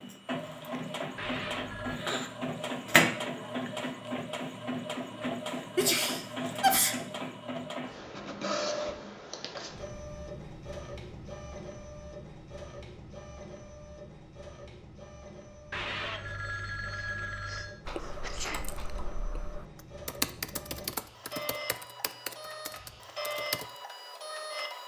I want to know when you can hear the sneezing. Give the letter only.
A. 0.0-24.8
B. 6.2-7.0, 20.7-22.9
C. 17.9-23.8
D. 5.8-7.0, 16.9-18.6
D.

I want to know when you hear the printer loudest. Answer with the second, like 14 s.
3 s.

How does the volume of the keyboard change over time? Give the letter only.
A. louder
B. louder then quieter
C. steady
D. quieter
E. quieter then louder
B.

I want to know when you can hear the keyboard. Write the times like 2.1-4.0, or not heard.
17.9-23.8.